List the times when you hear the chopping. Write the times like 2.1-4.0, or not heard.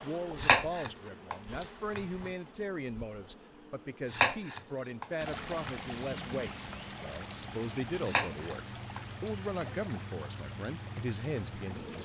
0.3-2.3, 4.1-5.8, 8.0-9.7.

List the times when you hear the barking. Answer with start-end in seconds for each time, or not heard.
not heard.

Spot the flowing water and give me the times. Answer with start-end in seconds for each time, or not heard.
5.2-12.0.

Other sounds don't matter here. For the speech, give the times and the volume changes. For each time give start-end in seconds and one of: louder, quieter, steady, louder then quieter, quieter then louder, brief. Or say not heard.
0.0-12.0 steady.